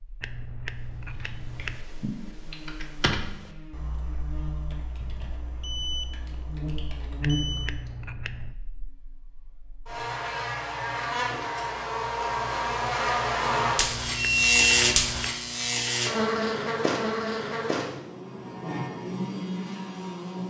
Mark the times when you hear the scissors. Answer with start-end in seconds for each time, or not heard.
0.2-1.8, 7.2-8.6, 13.8-15.3.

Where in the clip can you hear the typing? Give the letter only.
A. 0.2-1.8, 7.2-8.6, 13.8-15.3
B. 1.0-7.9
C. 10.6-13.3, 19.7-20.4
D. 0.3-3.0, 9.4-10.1
B.